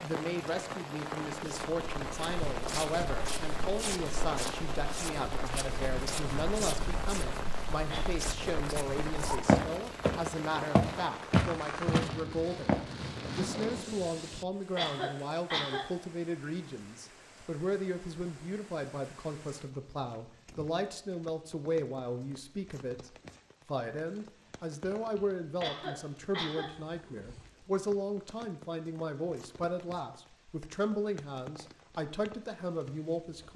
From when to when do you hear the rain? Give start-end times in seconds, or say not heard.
0.0-33.5.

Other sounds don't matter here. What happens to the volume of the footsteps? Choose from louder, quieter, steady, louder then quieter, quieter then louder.
louder.